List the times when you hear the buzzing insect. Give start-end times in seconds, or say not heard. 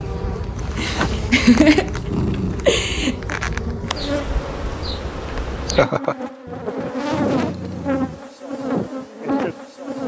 0.0-10.0.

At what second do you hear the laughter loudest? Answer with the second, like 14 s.
2 s.